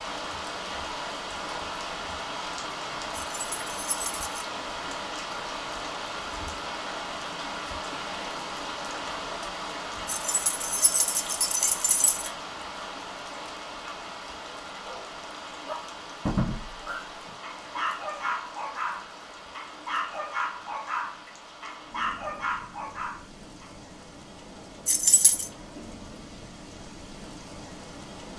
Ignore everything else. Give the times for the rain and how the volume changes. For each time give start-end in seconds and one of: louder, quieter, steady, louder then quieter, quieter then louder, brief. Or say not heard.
0.0-28.3 quieter.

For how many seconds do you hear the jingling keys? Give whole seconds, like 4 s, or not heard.
4 s.